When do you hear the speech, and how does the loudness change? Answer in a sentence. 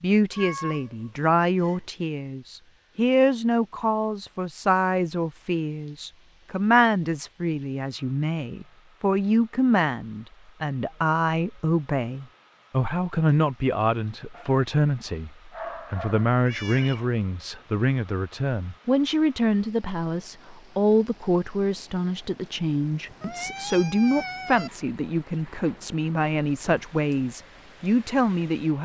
You can hear the speech from 0.0 to 28.8 s, at a steady volume.